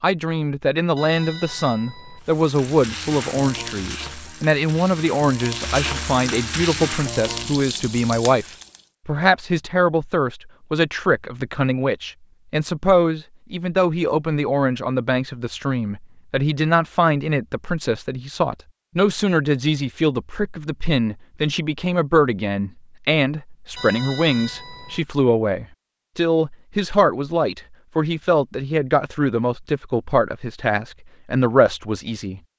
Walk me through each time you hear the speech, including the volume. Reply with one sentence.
You can hear the speech from 0.0 to 8.4 s, at a steady volume; and from 9.1 to 32.4 s, at a steady volume.